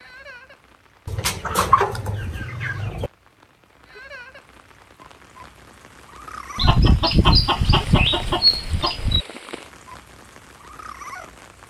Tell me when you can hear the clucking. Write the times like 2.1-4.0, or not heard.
1.1-3.1, 6.5-9.2.